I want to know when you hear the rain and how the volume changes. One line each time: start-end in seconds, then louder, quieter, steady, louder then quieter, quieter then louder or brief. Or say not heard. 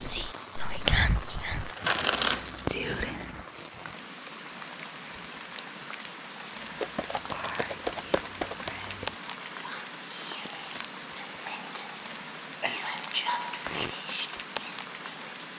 0.0-15.5 steady.